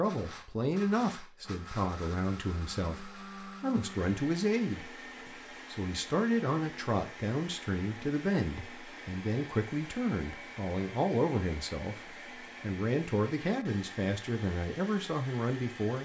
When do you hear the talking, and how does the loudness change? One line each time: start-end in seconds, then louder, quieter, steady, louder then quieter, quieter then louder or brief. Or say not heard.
0.0-4.9 quieter then louder
5.7-15.9 steady.